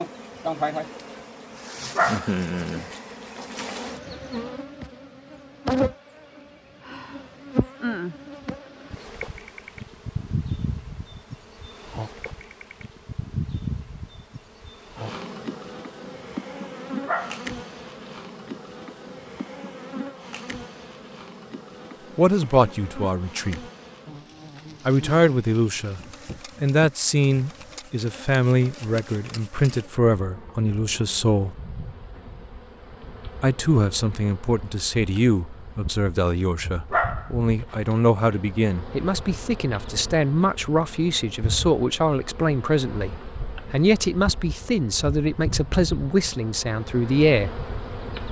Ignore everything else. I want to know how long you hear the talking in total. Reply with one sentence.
You can hear the talking for 22 seconds altogether.